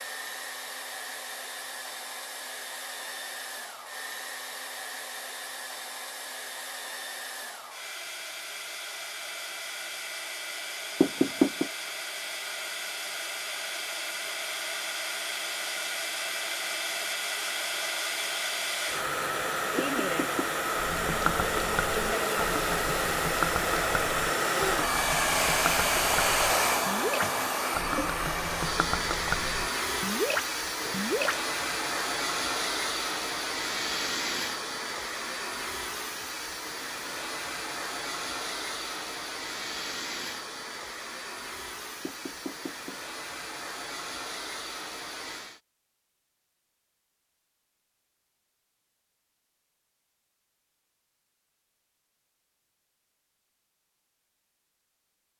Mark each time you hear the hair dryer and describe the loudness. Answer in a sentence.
You can hear the hair dryer from 0.0 to 45.6 s, getting louder then quieter.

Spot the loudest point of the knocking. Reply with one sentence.
The loudest moment of the knocking is at 11 seconds.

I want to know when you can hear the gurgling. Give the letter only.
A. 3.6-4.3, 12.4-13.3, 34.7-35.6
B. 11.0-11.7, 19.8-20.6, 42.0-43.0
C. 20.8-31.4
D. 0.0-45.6
C.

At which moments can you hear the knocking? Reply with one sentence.
You can hear the knocking from 11.0 to 11.7 s, from 19.8 to 20.6 s and from 42.0 to 43.0 s.